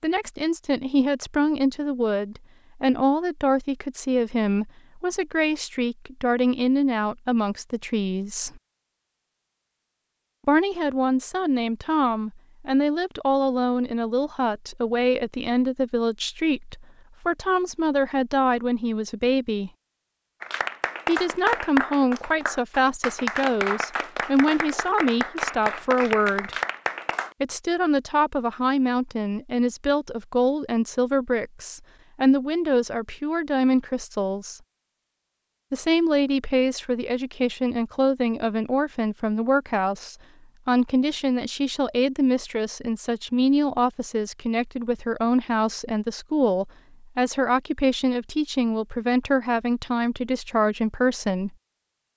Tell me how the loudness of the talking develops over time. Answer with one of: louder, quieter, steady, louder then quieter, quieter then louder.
steady.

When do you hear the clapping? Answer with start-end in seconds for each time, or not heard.
20.4-27.4.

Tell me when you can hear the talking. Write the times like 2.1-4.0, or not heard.
0.0-8.6, 10.4-19.7, 21.1-26.6, 27.4-34.6, 35.7-51.5.